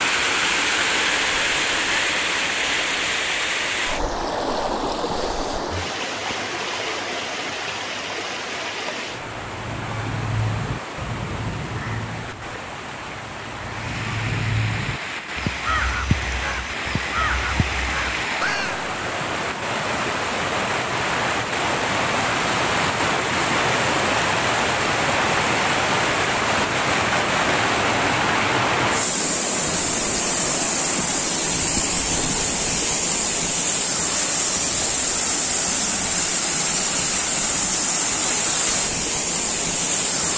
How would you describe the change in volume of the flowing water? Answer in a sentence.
The loudness of the flowing water goes down, then up.